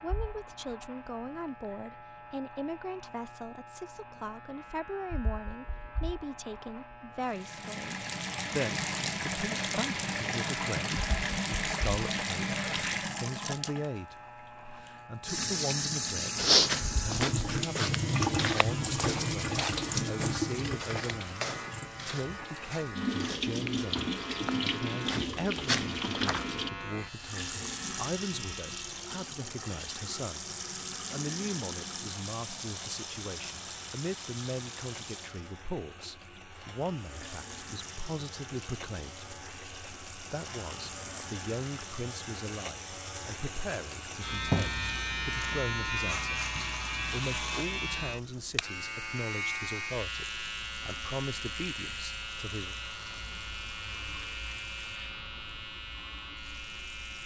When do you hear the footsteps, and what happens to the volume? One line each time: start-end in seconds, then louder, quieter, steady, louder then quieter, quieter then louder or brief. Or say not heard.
16.4-26.4 quieter then louder.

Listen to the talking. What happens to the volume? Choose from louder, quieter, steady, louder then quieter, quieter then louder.
steady.